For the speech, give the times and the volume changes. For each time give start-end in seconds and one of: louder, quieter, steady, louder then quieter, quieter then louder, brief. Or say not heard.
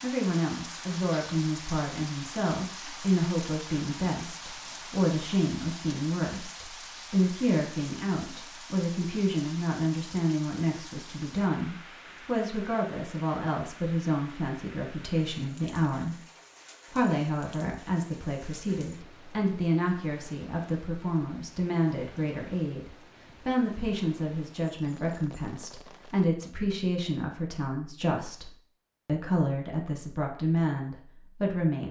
0.0-16.1 steady
16.9-31.8 steady.